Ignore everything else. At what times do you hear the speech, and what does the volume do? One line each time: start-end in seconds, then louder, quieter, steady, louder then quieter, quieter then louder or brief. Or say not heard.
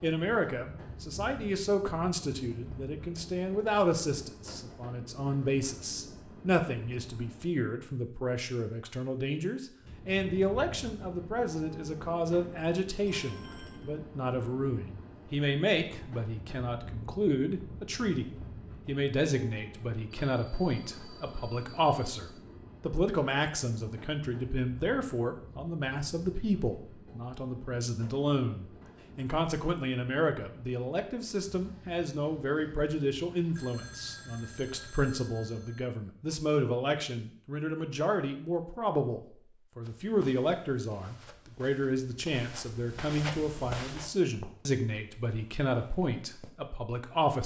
0.0-47.4 steady.